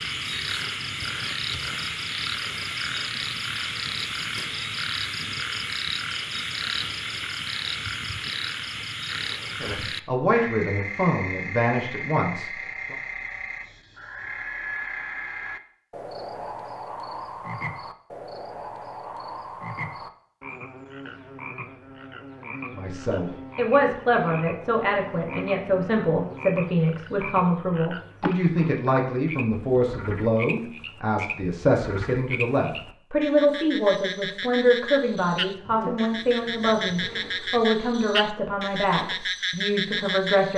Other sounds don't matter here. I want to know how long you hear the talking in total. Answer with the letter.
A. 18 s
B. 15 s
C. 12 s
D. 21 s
D.